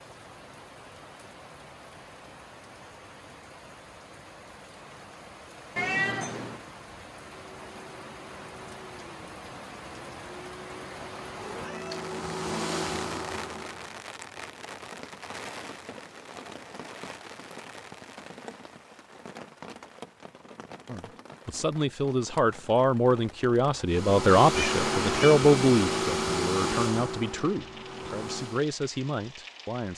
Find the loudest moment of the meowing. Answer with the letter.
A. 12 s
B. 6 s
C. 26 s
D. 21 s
B.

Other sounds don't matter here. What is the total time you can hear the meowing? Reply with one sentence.
The meowing can be heard for 2 seconds in total.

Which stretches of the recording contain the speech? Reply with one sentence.
You can hear the speech from 20.9 to 29.9 s.